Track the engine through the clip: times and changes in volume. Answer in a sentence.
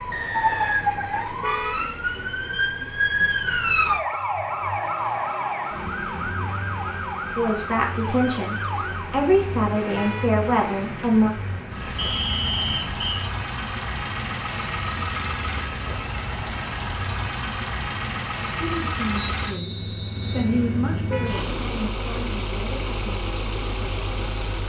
The engine can be heard from 0.0 to 24.6 s, getting louder.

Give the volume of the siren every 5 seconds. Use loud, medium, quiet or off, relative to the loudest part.
loud, medium, quiet, off, off.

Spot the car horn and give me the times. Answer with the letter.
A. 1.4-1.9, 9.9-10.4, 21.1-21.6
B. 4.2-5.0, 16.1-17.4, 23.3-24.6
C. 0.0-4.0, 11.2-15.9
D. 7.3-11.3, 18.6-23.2
A.